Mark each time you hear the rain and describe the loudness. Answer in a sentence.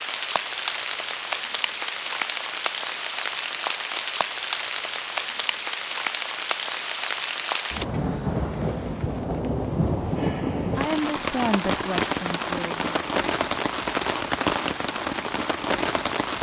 You can hear the rain from 0.0 to 16.3 s, at a steady volume.